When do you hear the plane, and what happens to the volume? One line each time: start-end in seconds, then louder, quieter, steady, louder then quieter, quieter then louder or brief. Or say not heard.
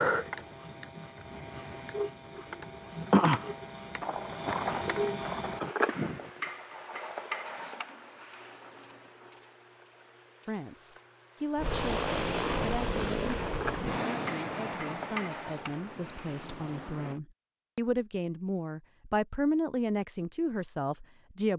11.6-17.2 quieter.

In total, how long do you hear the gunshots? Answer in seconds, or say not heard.
2 s.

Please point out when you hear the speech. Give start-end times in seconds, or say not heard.
10.4-21.5.